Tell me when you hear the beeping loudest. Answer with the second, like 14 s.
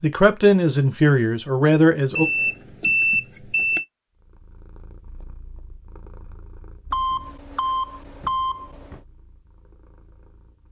3 s.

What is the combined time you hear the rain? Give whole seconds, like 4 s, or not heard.
not heard.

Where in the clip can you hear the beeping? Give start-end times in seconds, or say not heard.
2.1-3.9, 6.9-9.0.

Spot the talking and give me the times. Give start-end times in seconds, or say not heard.
0.0-2.2.